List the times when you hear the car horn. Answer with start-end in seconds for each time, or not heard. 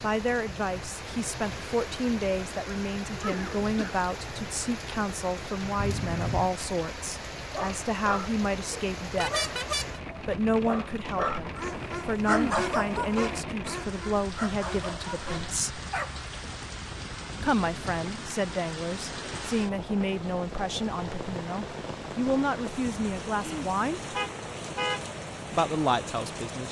5.8-6.5, 9.2-10.0, 24.1-25.1.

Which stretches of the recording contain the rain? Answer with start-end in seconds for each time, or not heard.
0.0-26.6.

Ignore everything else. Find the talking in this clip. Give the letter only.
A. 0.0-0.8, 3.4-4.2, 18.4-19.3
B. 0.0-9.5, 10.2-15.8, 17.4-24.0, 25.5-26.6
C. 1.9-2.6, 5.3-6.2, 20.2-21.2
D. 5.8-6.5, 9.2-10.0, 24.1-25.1
B.